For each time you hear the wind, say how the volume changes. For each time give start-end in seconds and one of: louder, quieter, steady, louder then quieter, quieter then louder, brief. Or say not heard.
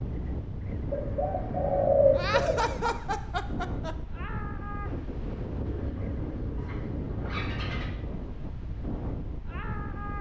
0.0-10.1 steady.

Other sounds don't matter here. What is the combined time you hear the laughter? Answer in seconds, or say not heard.
2 s.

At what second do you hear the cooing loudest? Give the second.
2 s.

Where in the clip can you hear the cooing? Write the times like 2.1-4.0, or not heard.
0.9-2.6, 5.7-7.9.